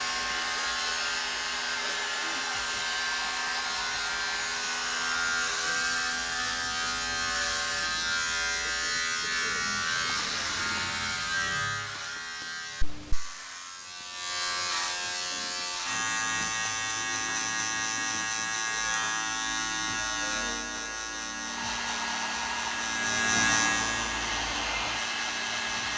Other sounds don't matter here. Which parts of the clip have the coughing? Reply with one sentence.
The coughing can't be heard in this clip.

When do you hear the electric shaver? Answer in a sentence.
The electric shaver can be heard from 0.0 to 25.9 s.